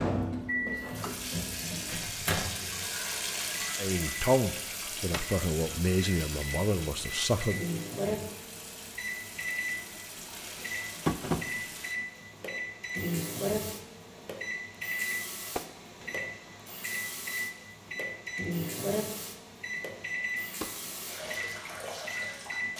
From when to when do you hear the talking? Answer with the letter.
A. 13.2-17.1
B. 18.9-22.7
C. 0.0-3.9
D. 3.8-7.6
D.